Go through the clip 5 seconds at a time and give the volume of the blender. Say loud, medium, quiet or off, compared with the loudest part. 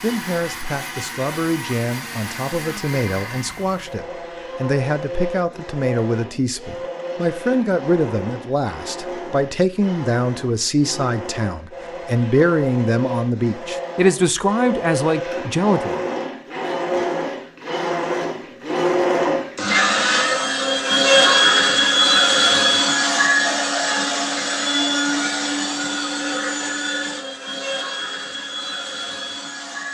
quiet, quiet, quiet, medium, loud, medium.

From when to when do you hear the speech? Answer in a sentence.
You can hear the speech from 0.0 to 15.9 s.